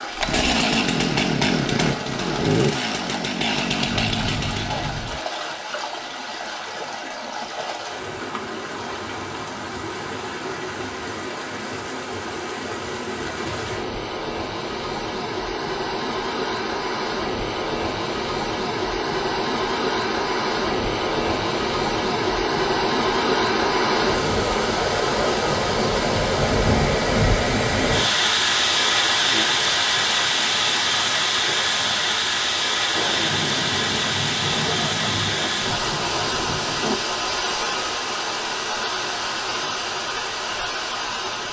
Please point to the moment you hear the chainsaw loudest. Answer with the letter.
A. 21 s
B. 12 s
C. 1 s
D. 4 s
C.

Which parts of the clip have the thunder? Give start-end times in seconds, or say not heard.
3.9-5.2, 33.0-37.0.